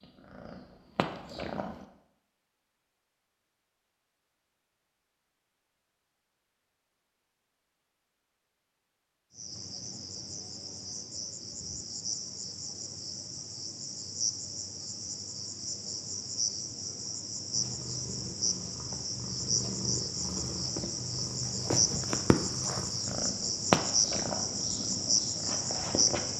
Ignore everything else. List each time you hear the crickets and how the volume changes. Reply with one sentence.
You can hear the crickets from 9.3 to 26.3 s, getting louder.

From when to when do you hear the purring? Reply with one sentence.
The purring can be heard from 0.0 to 1.9 s and from 17.5 to 26.3 s.